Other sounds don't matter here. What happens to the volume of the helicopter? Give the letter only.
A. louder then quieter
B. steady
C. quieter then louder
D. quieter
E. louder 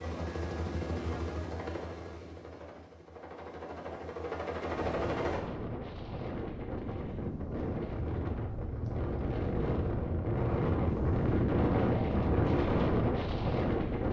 C.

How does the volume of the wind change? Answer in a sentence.
The loudness of the wind goes up.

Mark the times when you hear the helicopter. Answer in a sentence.
The helicopter can be heard from 0.0 to 5.4 s.